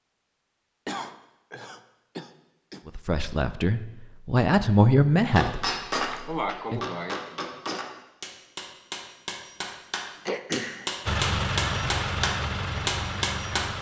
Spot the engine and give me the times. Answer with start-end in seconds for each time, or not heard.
11.1-13.7.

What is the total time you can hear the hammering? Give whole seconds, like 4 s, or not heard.
8 s.